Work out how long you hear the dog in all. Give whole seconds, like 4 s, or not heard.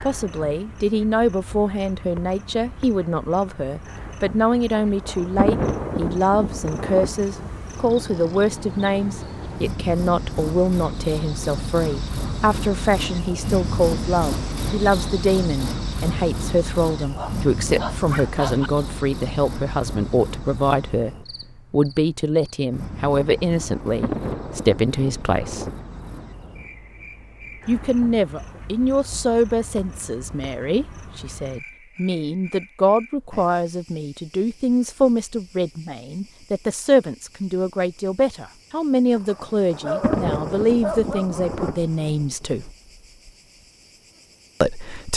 4 s.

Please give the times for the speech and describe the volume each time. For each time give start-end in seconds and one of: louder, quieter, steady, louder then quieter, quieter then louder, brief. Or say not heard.
0.0-25.7 steady
27.6-42.7 steady
44.6-45.1 brief.